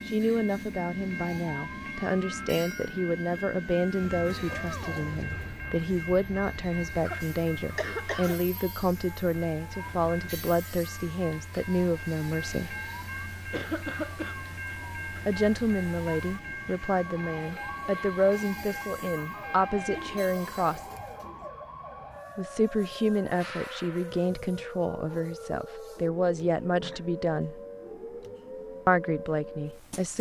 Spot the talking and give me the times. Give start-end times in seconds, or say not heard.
0.1-12.7, 15.2-20.9, 22.4-27.6, 28.9-30.1.